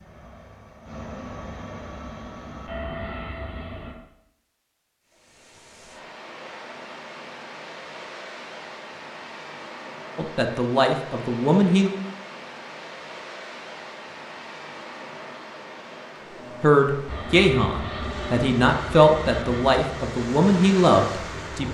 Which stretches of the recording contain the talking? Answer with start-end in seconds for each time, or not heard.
10.2-11.9, 16.6-21.7.